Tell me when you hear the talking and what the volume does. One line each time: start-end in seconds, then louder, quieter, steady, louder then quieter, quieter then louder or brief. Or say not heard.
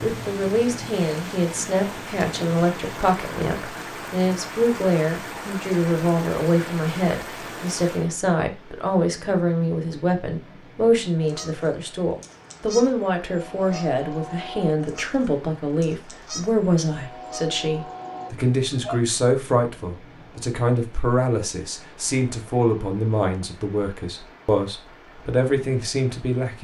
0.0-26.5 steady.